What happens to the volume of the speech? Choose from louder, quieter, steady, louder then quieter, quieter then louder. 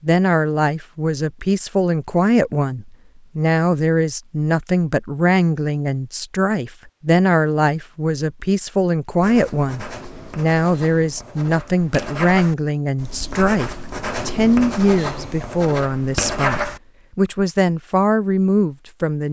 steady.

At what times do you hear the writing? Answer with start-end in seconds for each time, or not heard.
9.2-16.8.